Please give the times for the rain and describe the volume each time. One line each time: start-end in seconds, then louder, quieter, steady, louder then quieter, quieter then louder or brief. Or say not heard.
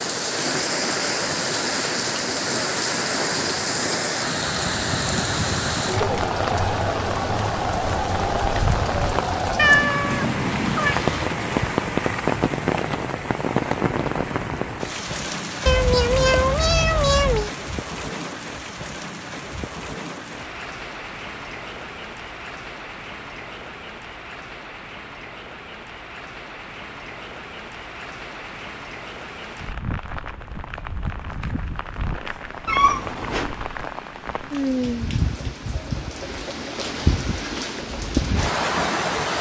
0.0-39.3 quieter then louder.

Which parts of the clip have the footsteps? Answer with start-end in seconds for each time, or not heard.
not heard.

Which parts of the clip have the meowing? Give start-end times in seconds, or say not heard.
9.6-10.9, 15.7-17.5, 32.6-33.5.